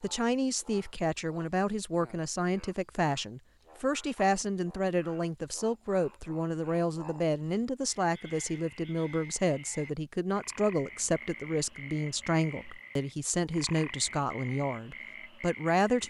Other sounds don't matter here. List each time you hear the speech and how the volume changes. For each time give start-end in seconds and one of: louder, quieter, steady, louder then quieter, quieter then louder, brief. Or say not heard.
0.0-16.0 steady.